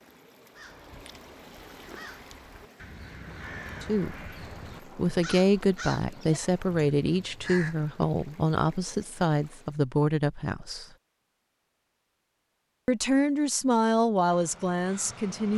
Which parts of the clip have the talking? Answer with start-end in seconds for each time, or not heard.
3.8-4.3, 5.0-10.8, 12.8-15.5.